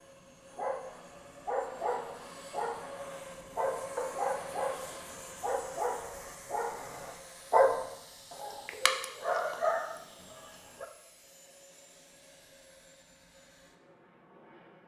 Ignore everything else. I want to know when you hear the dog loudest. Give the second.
8 s.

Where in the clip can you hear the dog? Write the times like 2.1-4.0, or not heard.
0.6-10.8.